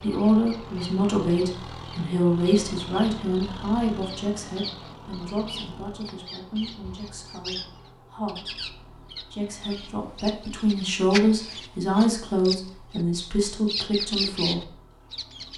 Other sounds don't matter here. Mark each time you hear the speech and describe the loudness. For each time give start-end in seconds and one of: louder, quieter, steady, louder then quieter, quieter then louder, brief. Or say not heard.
0.0-14.7 quieter then louder.